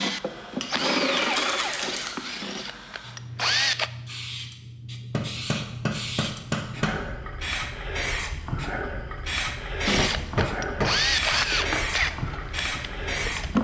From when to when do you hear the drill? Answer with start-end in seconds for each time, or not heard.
0.0-3.9, 9.8-13.5.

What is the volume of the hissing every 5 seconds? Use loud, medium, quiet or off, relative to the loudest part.
medium, loud, loud.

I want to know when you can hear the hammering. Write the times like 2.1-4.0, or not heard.
0.6-1.9, 5.1-7.0, 9.9-11.9.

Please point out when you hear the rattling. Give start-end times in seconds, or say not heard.
1.2-2.1.